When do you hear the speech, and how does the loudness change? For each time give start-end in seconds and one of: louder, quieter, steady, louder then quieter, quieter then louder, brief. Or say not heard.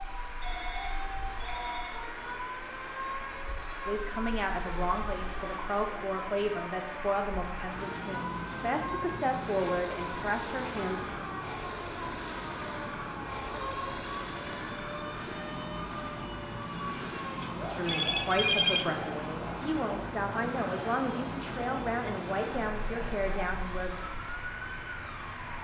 3.9-11.2 steady
17.6-24.0 steady.